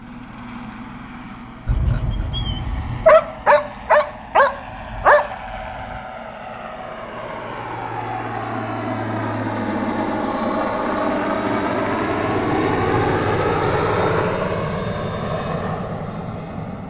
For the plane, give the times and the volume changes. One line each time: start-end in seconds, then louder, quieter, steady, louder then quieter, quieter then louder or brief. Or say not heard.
0.0-16.8 louder.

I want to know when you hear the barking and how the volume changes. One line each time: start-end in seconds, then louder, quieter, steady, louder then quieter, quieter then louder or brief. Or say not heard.
1.6-6.0 louder.